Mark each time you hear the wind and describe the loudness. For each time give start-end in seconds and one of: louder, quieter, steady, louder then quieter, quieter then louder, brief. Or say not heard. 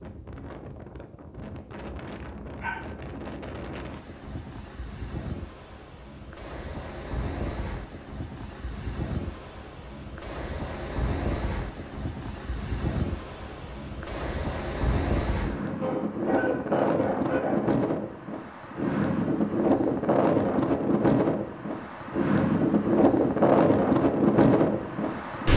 0.0-25.5 louder.